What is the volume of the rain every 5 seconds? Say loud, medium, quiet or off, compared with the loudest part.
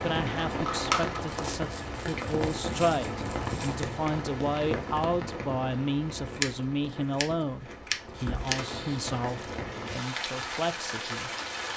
loud, medium, loud.